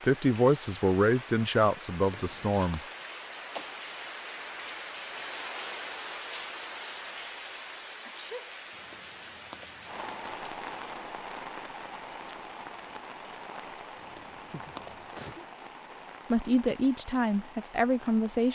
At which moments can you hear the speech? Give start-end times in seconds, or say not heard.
0.0-2.8, 16.3-18.5.